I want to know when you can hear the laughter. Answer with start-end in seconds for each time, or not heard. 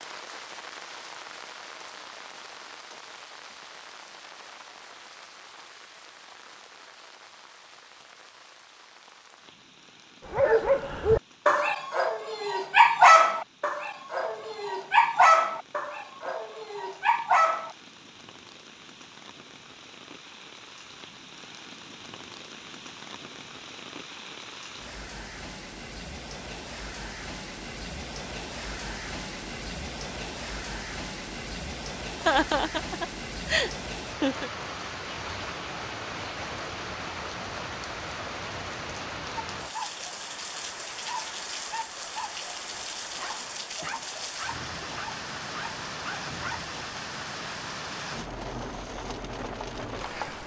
32.2-34.5.